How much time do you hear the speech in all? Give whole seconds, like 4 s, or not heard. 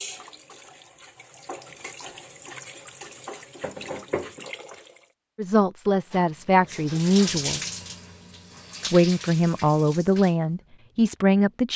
5 s.